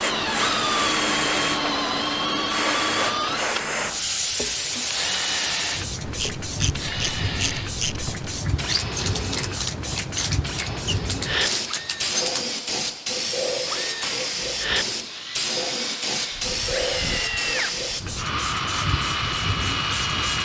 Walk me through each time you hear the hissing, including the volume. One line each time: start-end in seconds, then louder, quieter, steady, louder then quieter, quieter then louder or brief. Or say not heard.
0.0-20.3 steady.